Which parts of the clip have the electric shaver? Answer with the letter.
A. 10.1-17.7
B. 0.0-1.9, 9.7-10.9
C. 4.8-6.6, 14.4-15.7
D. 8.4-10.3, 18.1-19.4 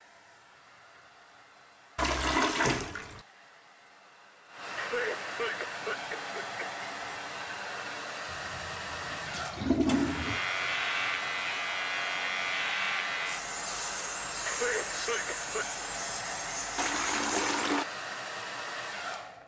A.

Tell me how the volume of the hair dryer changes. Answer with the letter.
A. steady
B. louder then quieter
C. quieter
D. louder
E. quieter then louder
D.